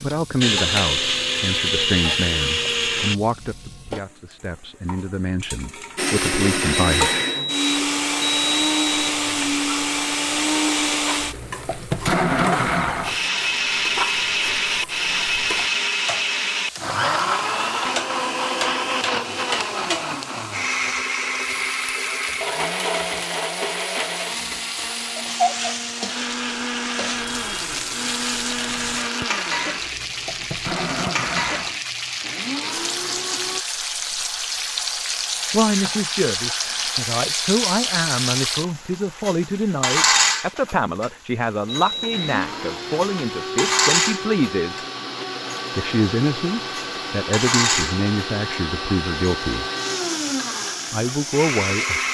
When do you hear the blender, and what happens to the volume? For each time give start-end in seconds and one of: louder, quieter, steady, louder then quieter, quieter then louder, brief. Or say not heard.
0.4-3.1 brief
6.0-33.6 quieter
42.1-52.0 steady.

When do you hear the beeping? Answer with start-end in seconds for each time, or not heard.
6.7-9.2, 41.6-42.4.